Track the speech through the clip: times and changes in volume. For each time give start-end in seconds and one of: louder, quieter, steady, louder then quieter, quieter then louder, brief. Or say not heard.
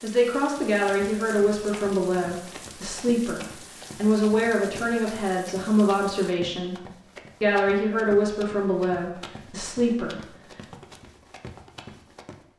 0.0-10.3 steady.